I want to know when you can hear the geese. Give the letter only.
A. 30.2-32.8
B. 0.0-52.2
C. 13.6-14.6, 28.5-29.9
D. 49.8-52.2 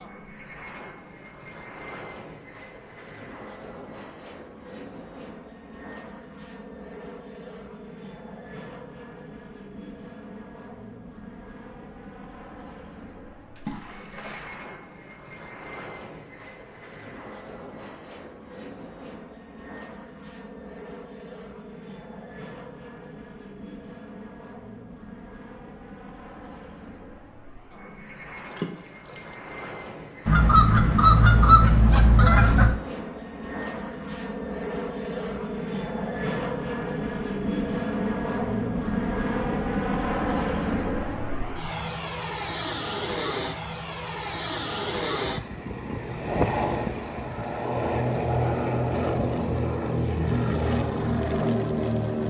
A.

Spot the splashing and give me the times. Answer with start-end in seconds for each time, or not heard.
13.6-14.6, 28.5-29.9.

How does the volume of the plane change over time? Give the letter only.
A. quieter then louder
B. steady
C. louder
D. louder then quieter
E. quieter
C.